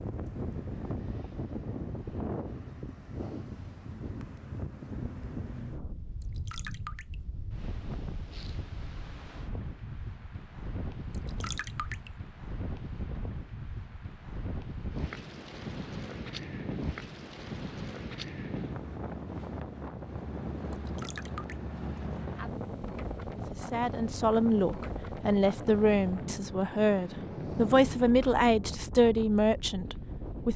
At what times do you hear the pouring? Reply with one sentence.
The pouring can be heard from 6.2 to 7.2 s, from 11.1 to 12.1 s and from 20.7 to 21.6 s.